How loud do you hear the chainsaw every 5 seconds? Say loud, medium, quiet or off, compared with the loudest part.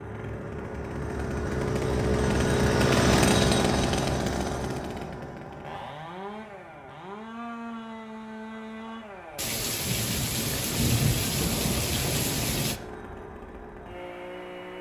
loud, quiet, quiet.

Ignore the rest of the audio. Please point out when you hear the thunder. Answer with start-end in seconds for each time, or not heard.
9.3-12.8.